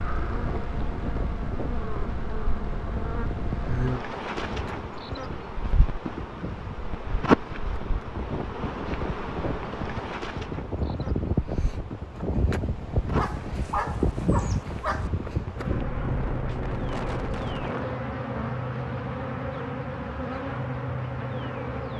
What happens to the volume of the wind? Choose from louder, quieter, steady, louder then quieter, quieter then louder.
louder.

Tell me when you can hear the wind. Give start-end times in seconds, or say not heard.
0.2-18.1.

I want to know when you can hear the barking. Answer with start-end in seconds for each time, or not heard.
13.2-15.1.